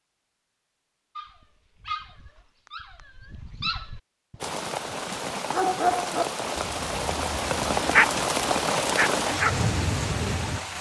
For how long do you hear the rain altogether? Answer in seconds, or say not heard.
6 s.